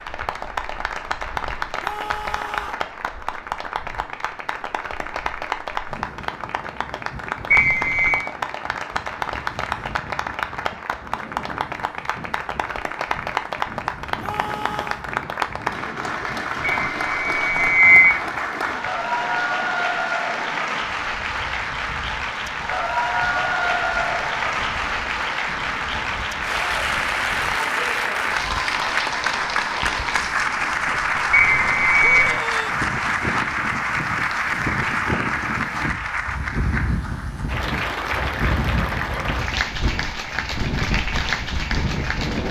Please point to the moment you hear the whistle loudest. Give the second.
18 s.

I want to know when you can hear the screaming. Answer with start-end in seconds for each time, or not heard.
1.8-2.9, 14.2-15.1, 32.0-32.7.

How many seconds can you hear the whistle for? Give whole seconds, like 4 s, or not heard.
3 s.